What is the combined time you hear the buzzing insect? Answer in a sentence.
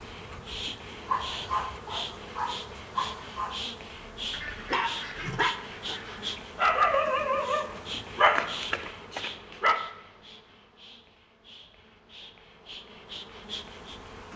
The buzzing insect can be heard for 14 seconds in total.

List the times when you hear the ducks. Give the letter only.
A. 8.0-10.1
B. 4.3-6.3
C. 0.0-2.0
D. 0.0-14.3
B.